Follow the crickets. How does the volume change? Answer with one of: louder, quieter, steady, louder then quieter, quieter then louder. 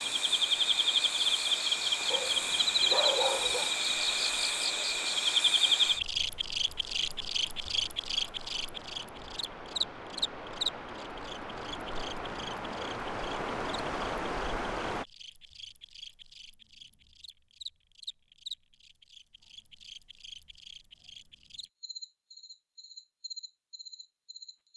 quieter.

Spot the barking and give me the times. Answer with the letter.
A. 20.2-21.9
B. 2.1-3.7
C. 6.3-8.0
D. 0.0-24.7
B.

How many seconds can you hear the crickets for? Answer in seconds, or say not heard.
25 s.